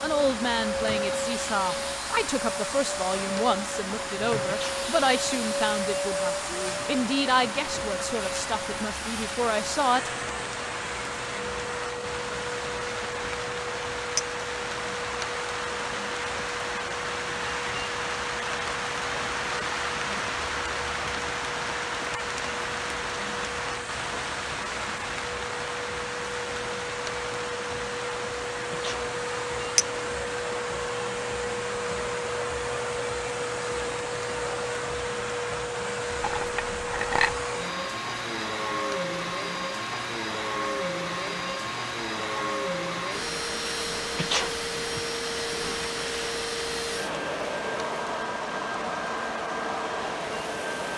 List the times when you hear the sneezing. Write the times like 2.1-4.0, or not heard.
4.5-5.3, 28.7-29.1, 44.1-45.0.